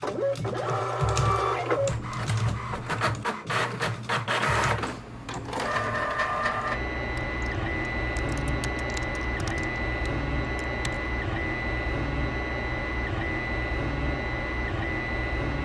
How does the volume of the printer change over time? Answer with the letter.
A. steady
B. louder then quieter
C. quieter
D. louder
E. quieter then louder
A.